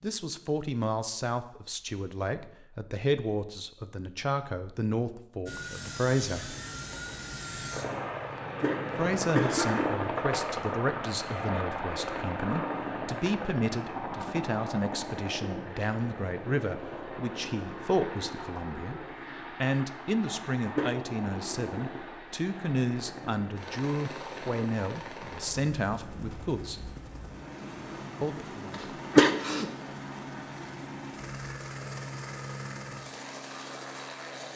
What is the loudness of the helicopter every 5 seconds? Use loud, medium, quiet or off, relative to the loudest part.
off, loud, loud, medium, medium, medium, medium.